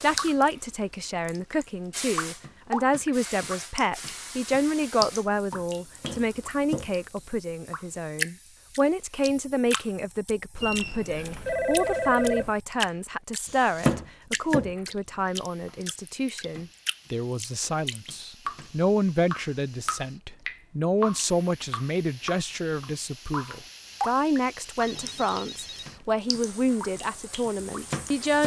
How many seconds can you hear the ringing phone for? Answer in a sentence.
You can hear the ringing phone for 3 seconds altogether.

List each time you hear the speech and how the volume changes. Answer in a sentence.
The speech can be heard from 0.0 to 28.4 s, at a steady volume.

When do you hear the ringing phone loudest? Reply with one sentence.
The volume of the ringing phone peaks at 12 seconds.